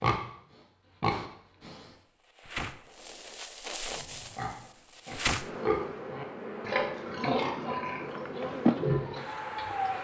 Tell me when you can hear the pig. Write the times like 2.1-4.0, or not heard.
0.0-1.9, 3.9-10.0.